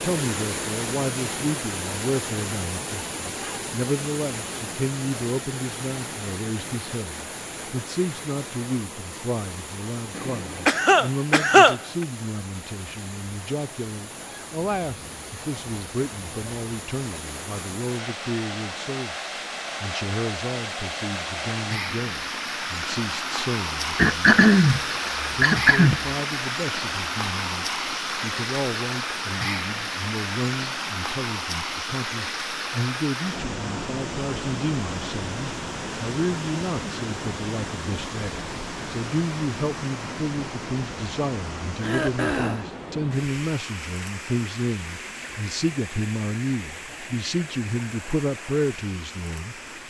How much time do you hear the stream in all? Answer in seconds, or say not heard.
50 s.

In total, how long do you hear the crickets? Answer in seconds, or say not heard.
not heard.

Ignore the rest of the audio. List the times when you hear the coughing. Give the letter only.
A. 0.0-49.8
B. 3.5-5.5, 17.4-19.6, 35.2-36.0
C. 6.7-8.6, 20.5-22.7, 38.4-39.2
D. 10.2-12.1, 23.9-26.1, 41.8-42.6
D.